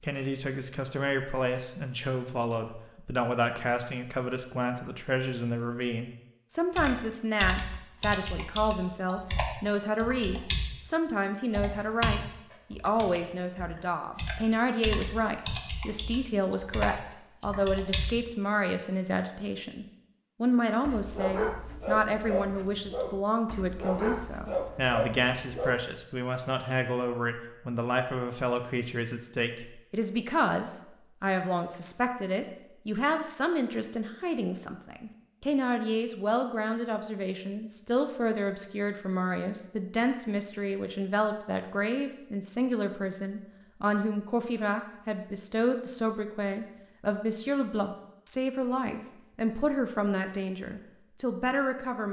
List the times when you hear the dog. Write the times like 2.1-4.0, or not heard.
20.8-25.9.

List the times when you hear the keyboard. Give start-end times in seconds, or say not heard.
6.8-10.8, 11.5-18.2.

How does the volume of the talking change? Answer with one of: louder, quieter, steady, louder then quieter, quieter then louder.
steady.